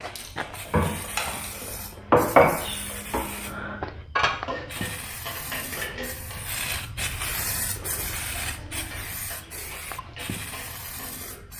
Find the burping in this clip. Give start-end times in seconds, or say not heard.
not heard.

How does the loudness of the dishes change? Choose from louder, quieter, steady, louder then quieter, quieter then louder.
quieter.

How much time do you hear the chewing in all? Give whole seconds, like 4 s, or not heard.
2 s.